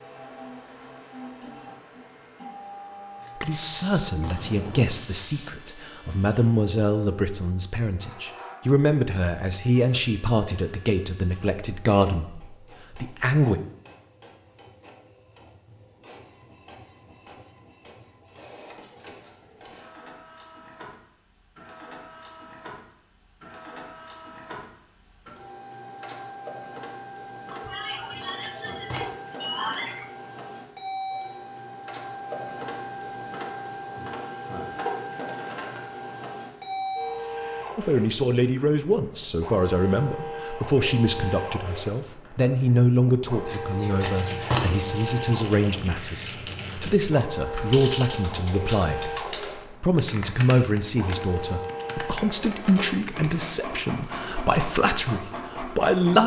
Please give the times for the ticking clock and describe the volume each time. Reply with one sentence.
The ticking clock can't be heard in this clip.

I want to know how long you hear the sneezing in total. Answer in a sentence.
You can hear the sneezing for 5 seconds altogether.